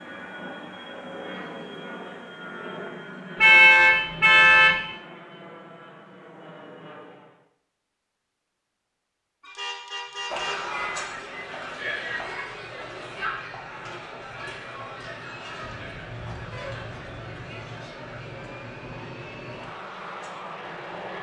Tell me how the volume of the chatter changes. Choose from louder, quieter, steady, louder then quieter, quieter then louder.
quieter.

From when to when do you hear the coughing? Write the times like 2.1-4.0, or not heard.
not heard.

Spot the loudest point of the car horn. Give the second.
4 s.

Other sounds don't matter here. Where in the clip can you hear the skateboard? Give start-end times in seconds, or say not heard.
not heard.